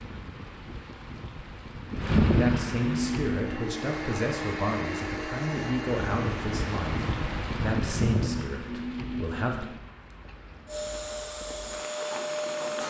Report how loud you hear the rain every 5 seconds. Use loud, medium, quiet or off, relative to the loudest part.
loud, loud, quiet.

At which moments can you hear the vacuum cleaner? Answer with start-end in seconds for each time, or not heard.
3.2-7.5, 10.7-12.8.